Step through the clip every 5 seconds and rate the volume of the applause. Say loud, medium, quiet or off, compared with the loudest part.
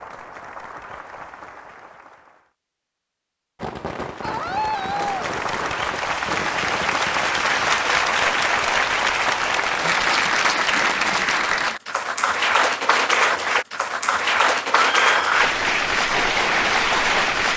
quiet, loud, loud, loud.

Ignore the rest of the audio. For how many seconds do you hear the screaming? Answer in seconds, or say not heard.
2 s.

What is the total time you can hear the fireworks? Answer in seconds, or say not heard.
4 s.